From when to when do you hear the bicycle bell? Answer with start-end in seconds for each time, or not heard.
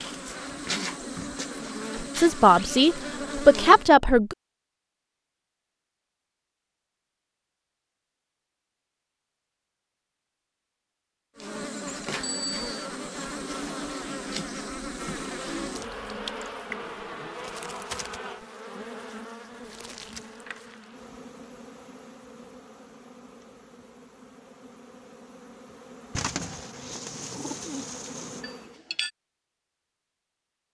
12.2-12.7, 28.4-29.1.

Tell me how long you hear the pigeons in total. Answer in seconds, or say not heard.
2 s.